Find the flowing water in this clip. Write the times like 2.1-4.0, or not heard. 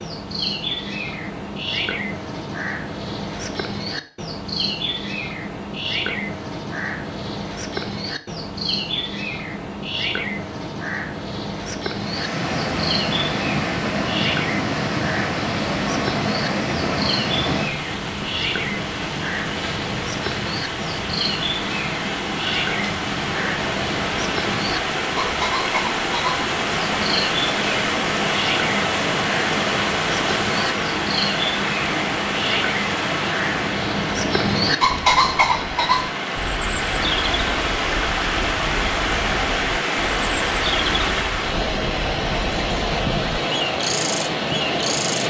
11.8-45.2.